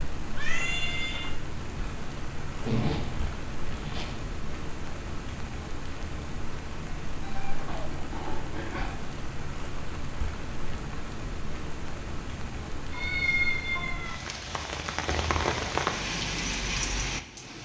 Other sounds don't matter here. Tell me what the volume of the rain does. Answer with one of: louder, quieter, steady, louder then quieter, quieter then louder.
louder.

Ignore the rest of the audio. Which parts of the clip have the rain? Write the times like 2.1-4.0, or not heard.
0.0-17.6.